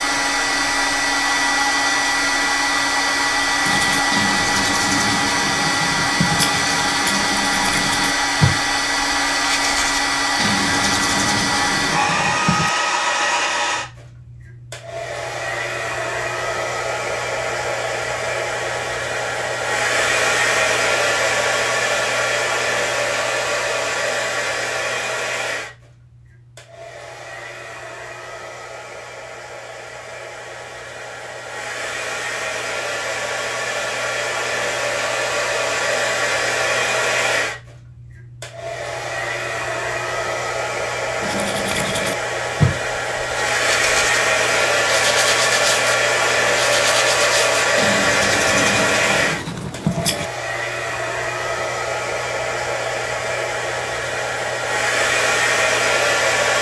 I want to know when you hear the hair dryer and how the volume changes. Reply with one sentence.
You can hear the hair dryer from 0.0 to 56.5 s, getting quieter then louder.